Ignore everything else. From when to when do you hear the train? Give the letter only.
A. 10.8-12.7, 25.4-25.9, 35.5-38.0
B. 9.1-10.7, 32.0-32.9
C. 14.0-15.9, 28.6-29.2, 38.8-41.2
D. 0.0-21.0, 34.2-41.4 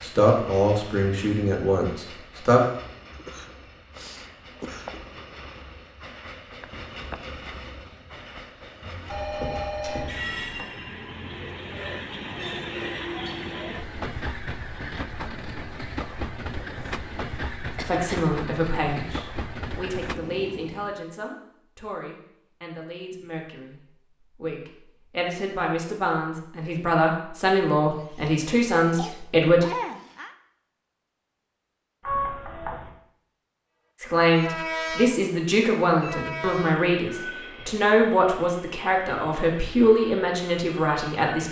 D.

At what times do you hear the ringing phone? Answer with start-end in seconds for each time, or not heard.
9.1-10.7, 32.0-32.9.